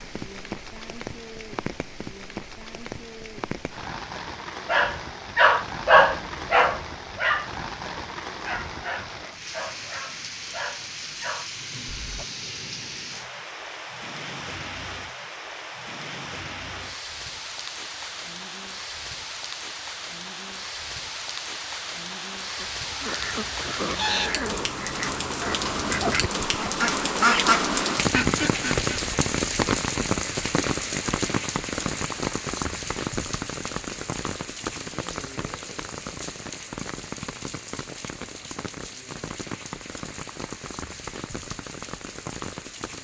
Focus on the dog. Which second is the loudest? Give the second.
6 s.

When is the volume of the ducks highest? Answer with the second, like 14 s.
27 s.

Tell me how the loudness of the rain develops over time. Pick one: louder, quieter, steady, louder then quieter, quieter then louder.
louder then quieter.